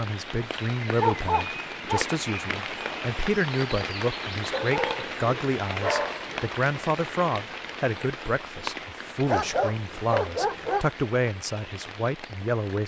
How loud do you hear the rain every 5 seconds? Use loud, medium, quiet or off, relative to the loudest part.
loud, loud, medium.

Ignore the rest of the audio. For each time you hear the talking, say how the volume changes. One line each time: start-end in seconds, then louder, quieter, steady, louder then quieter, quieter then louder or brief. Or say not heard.
0.0-12.8 steady.